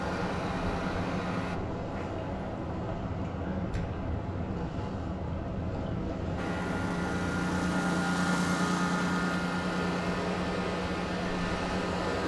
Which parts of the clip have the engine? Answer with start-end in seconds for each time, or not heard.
0.0-1.6, 6.3-12.2.